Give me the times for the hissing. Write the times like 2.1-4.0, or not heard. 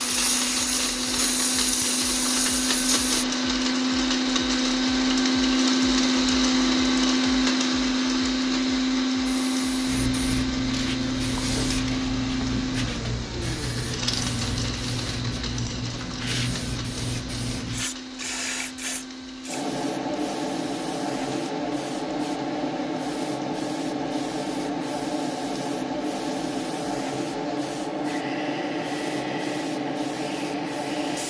0.0-3.2, 9.2-31.2.